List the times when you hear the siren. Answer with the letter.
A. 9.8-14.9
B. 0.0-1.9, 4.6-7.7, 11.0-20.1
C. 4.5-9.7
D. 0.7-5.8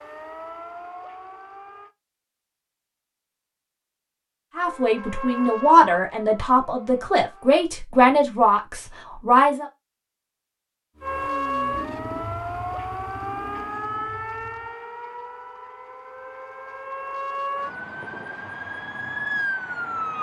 B.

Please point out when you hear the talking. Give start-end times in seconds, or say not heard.
4.5-9.7.